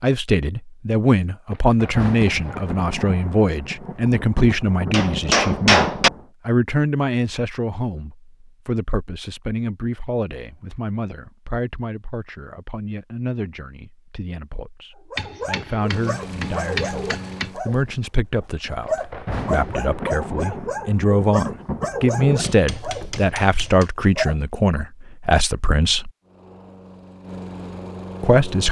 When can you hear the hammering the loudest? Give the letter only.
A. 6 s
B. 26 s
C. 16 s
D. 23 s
A.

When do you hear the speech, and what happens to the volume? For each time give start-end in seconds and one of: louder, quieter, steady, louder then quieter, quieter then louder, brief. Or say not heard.
0.0-26.1 quieter then louder
28.2-28.6 brief.